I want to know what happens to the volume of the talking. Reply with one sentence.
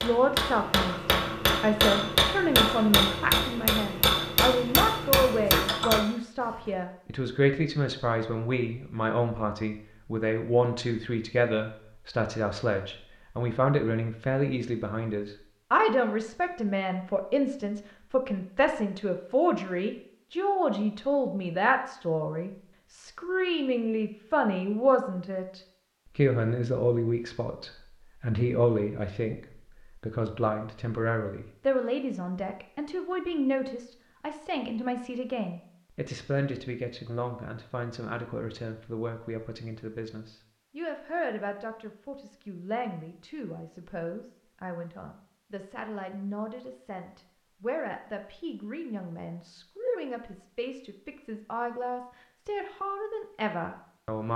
The volume of the talking goes down.